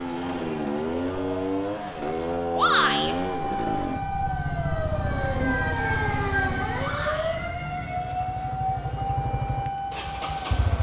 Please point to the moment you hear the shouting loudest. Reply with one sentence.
The volume of the shouting peaks at 3 seconds.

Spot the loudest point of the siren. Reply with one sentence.
The volume of the siren peaks at 6 seconds.